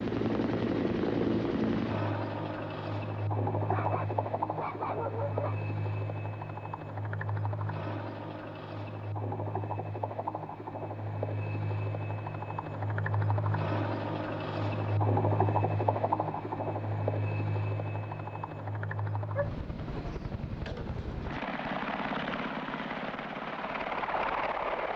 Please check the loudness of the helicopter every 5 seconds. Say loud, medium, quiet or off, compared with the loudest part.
loud, medium, loud, loud, loud.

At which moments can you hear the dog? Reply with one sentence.
You can hear the dog from 3.7 to 5.5 s and from 19.4 to 20.1 s.